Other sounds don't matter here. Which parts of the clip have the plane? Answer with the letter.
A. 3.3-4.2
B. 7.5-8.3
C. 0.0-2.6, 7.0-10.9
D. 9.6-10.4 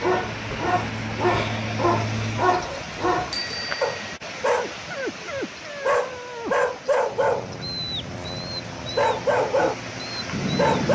C.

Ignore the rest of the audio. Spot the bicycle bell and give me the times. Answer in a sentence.
The bicycle bell can be heard from 3.3 to 4.2 s.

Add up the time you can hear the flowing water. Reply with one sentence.
The flowing water can be heard for 11 seconds in total.